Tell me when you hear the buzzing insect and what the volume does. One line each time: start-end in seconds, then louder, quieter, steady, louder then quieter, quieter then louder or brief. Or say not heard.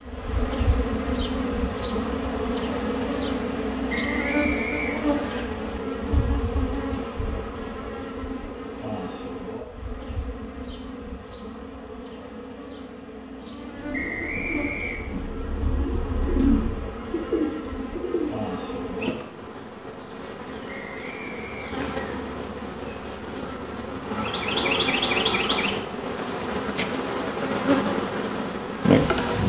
0.0-29.4 quieter then louder.